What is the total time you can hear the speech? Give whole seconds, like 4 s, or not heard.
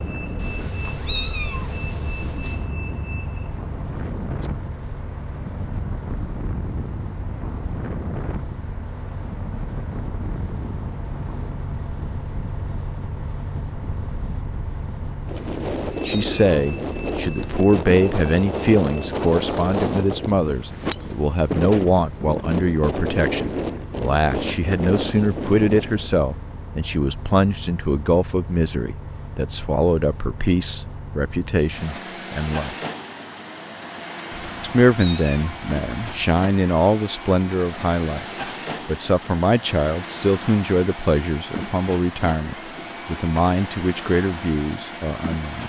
27 s.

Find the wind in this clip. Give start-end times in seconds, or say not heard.
0.0-26.1.